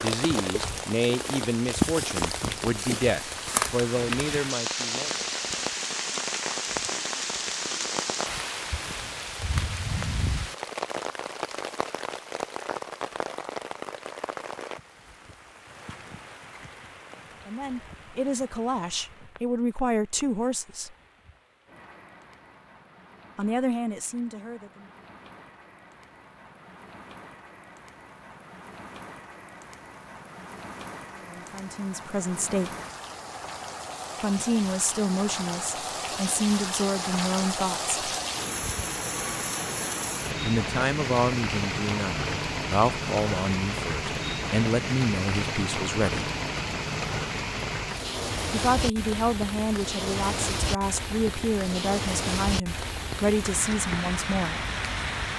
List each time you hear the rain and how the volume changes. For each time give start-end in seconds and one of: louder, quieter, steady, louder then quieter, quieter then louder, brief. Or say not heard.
0.0-55.3 quieter then louder.